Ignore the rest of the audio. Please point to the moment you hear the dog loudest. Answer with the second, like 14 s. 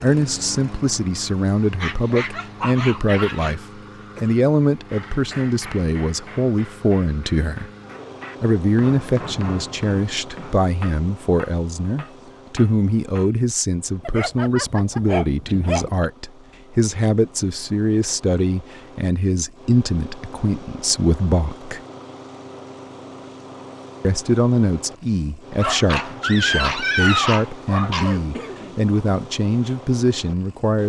27 s.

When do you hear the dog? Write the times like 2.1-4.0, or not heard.
1.8-3.5, 14.0-15.9, 25.6-28.1.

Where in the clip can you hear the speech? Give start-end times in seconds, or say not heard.
0.0-7.7, 8.4-21.8, 24.0-30.8.